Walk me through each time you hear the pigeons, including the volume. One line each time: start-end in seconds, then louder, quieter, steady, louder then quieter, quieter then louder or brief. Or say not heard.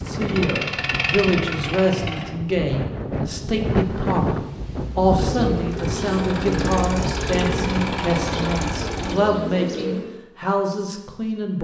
5.2-10.2 steady.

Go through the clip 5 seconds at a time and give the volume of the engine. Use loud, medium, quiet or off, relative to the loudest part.
loud, loud, off.